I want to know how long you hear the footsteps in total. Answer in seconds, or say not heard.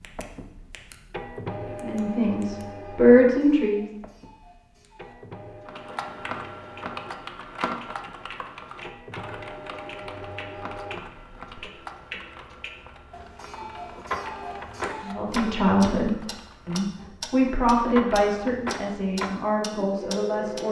not heard.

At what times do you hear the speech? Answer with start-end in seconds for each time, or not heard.
1.8-3.9, 15.1-20.6.